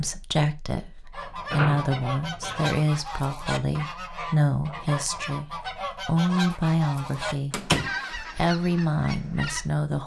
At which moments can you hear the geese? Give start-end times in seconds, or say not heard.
1.1-9.8.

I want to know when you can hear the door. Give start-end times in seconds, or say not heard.
1.5-2.7, 7.5-7.9.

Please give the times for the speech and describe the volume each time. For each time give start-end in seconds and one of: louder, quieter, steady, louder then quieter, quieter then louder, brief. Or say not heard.
0.0-10.0 steady.